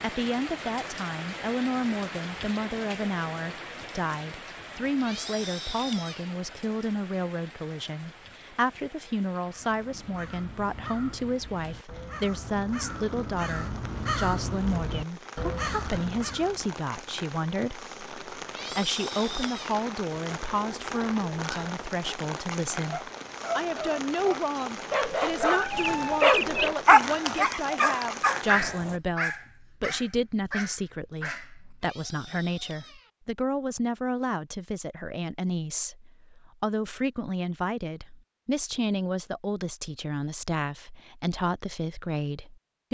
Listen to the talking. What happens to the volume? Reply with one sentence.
The loudness of the talking stays about the same.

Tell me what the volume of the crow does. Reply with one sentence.
The volume of the crow goes up.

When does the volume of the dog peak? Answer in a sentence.
The volume of the dog peaks at 27 seconds.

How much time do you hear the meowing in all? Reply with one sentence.
The meowing can be heard for 4 seconds in total.